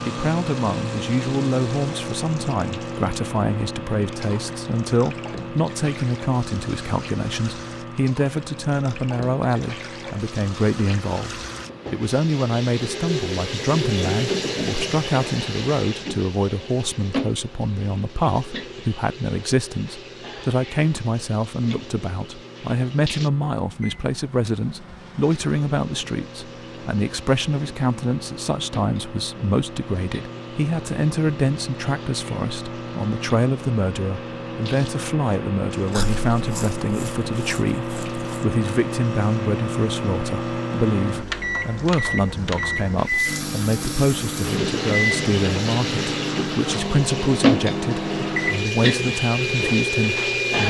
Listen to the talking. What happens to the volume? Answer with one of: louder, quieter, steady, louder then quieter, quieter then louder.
steady.